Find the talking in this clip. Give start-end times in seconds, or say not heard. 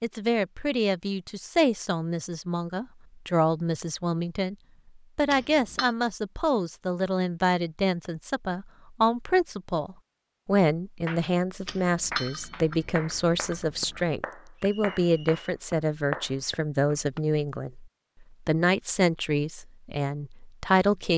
0.0-4.5, 5.2-17.9, 18.4-21.1.